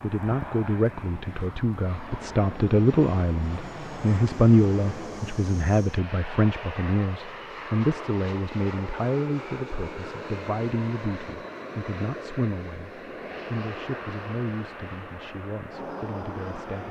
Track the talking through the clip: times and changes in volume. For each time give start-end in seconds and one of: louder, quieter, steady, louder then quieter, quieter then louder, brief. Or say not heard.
0.0-16.8 quieter.